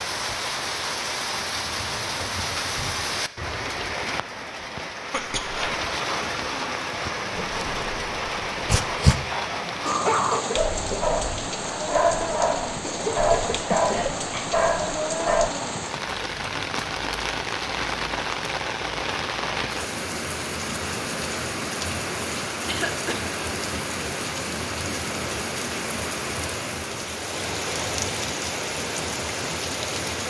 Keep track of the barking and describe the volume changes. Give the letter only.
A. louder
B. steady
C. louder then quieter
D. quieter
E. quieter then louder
B.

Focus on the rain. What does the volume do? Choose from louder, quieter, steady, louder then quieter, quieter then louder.
steady.